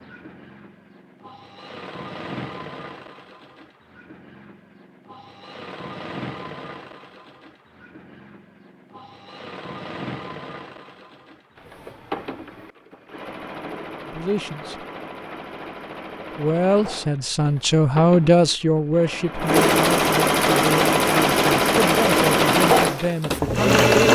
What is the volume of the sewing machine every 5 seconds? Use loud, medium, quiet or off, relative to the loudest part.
quiet, quiet, quiet, medium, loud.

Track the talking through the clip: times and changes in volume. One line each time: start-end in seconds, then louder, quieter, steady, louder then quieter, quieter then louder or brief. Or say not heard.
14.1-14.8 brief
16.4-23.9 quieter.